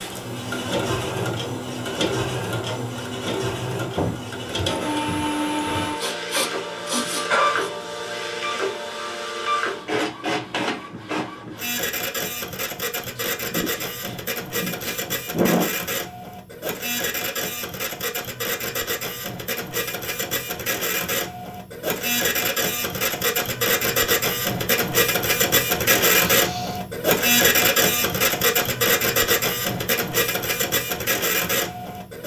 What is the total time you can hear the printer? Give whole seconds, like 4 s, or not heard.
32 s.